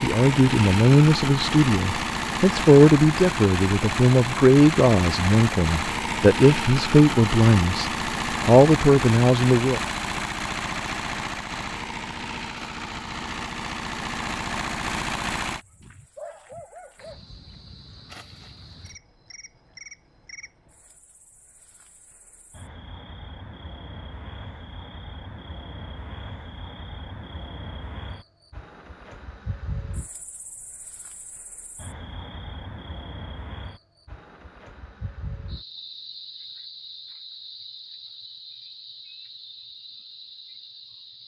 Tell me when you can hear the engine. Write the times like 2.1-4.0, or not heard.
0.0-15.6.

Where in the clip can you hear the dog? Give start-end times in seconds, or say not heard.
15.6-17.2.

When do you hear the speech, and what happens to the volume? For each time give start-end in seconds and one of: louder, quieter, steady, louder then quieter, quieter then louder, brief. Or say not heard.
0.0-9.8 steady.